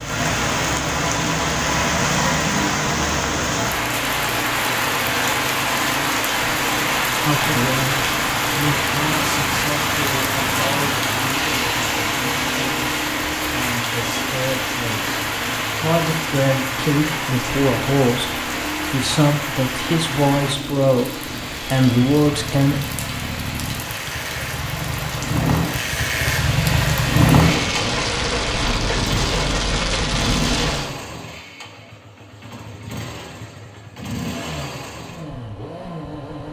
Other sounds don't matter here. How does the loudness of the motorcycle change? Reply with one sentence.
The volume of the motorcycle goes up, then down.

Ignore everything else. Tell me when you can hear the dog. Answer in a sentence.
The dog can't be heard in this clip.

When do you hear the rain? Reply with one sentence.
The rain can be heard from 0.0 to 30.9 s.